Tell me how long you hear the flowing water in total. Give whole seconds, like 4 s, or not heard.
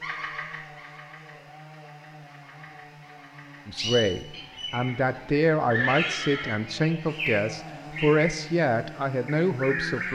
not heard.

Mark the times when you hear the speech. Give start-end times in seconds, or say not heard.
3.6-10.1.